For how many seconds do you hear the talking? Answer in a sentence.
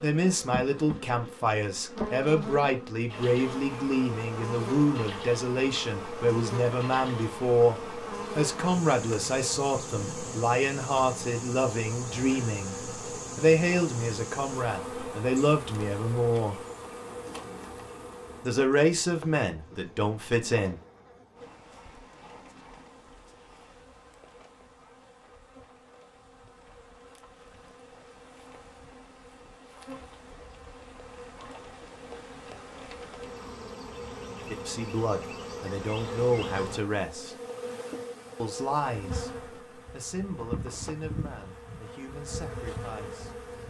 The talking can be heard for 27 seconds in total.